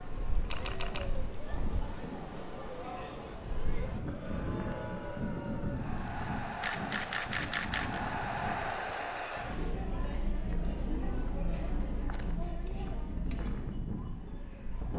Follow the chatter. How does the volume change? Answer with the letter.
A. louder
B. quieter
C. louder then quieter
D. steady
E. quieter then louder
C.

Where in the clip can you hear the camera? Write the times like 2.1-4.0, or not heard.
0.5-1.1, 6.6-8.0, 10.4-12.3.